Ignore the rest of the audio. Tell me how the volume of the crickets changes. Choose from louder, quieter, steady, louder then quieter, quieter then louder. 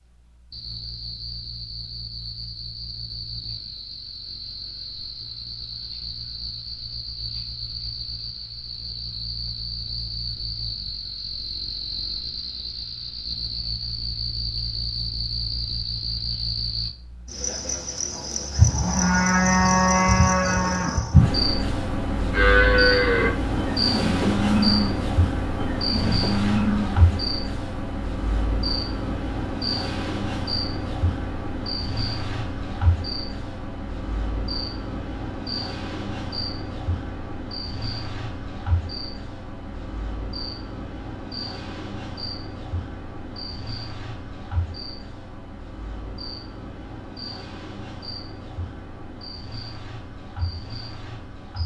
louder then quieter.